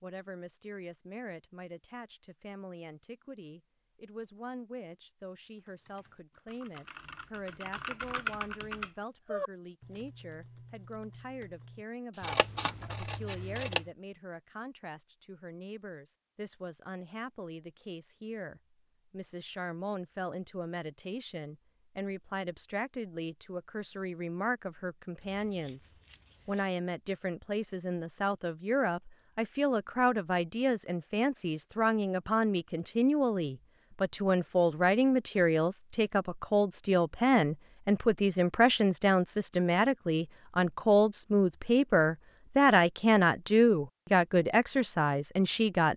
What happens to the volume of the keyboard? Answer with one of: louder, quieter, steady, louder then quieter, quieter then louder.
louder then quieter.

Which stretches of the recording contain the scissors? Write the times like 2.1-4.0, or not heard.
12.2-13.8, 25.2-26.6.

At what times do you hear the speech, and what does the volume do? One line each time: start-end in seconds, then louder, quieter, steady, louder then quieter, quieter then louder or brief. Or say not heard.
0.0-45.9 louder.